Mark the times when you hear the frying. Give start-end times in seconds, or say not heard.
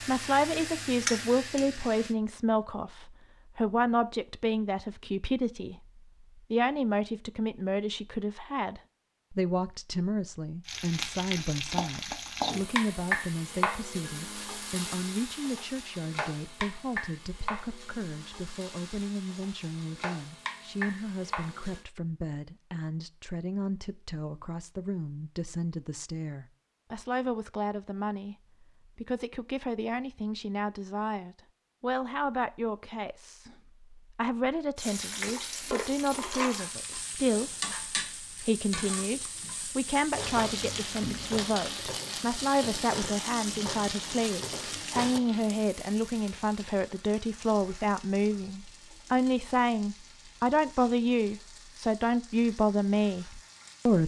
0.0-2.1, 10.7-21.9, 34.8-54.0.